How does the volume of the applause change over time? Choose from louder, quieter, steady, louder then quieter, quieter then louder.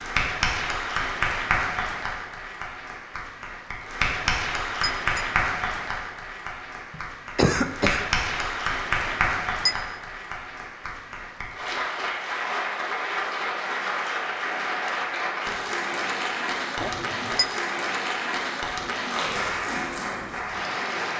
steady.